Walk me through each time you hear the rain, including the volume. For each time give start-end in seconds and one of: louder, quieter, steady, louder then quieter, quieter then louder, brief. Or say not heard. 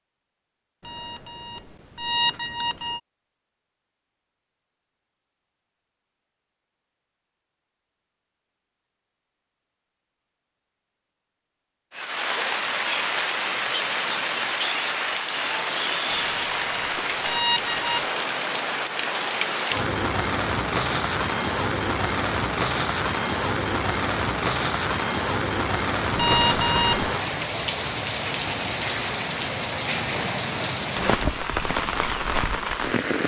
11.9-33.2 steady.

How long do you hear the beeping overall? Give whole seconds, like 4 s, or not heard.
5 s.